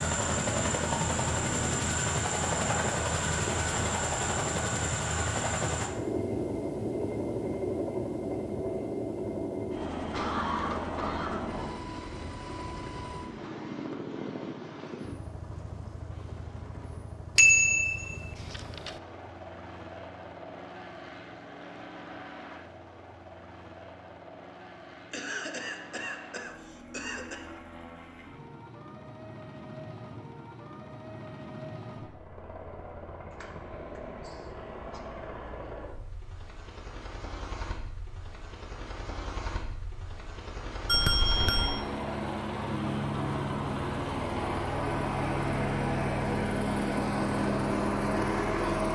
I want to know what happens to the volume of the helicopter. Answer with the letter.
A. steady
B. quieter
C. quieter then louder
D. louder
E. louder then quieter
C.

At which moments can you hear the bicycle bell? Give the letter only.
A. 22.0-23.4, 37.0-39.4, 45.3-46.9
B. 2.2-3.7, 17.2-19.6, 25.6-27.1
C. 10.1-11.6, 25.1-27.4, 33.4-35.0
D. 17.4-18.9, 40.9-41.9
D.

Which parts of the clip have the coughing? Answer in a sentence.
You can hear the coughing from 10.1 to 11.6 s, from 25.1 to 27.4 s and from 33.4 to 35.0 s.